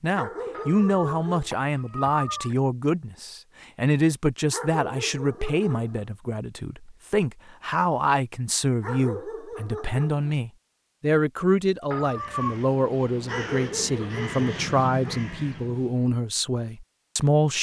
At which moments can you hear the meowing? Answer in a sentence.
You can hear the meowing from 0.5 to 2.5 s and from 11.9 to 12.7 s.